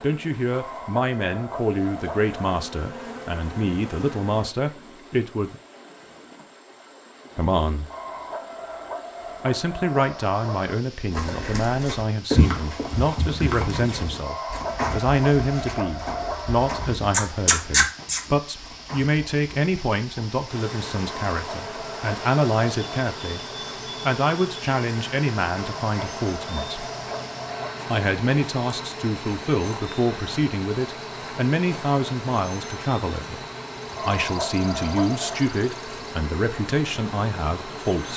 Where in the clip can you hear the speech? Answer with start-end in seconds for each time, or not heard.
0.0-5.5, 7.3-7.8, 9.4-23.4, 24.0-26.8, 27.9-33.4, 34.0-38.1.